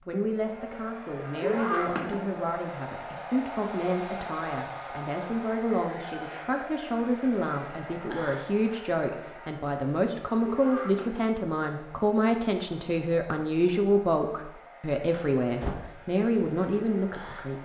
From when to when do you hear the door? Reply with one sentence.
You can hear the door from 15.1 to 15.8 s.